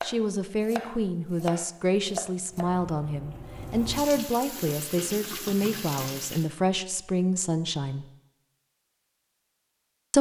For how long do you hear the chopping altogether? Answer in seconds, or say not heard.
3 s.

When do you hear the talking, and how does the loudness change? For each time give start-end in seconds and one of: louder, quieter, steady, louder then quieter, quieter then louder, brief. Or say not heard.
0.0-8.1 steady.